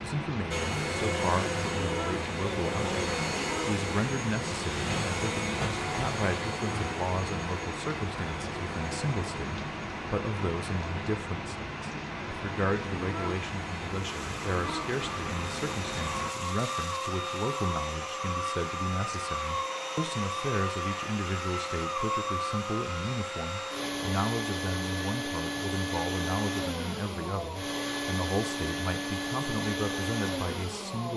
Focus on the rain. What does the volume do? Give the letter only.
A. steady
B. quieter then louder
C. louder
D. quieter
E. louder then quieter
A.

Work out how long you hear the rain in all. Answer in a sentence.
You can hear the rain for 16 seconds altogether.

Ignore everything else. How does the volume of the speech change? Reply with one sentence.
The volume of the speech stays about the same.